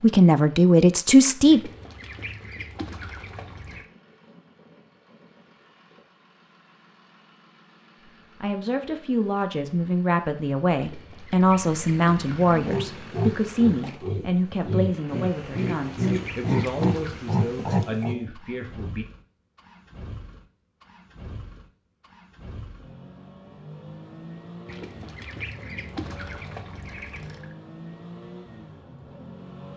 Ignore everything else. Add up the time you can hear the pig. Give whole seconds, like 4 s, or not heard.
6 s.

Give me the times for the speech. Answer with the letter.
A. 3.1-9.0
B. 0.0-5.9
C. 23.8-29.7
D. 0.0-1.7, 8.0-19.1
D.